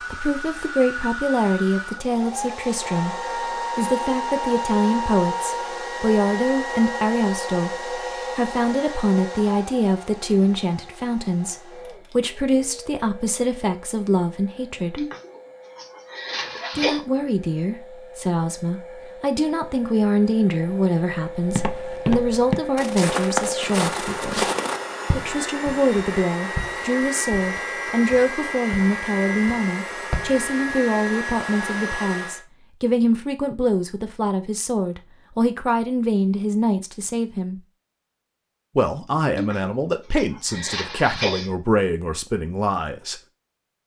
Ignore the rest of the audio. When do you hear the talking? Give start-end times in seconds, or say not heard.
0.0-15.1, 16.8-24.4, 25.1-37.6, 38.8-43.2.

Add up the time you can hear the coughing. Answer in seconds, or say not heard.
4 s.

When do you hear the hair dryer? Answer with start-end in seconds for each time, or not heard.
0.0-32.5.